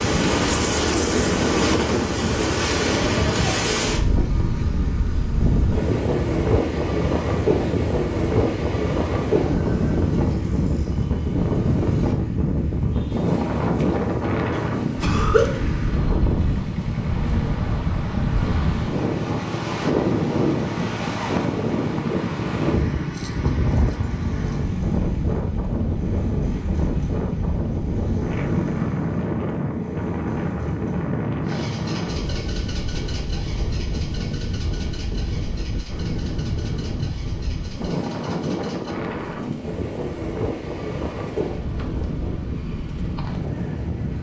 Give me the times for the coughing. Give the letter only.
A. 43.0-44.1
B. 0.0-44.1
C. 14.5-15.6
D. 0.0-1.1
C.